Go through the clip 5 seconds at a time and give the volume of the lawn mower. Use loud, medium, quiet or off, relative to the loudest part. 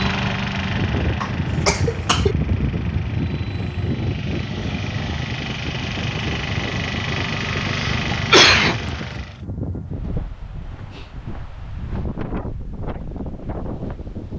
loud, loud, off.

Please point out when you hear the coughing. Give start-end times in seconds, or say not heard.
1.2-2.4, 7.7-8.8.